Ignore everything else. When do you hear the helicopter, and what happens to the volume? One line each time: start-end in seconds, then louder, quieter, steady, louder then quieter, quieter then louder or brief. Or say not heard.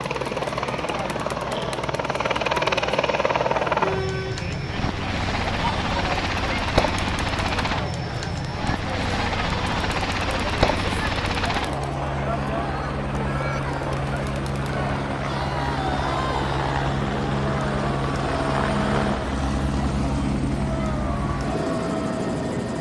0.0-22.7 steady.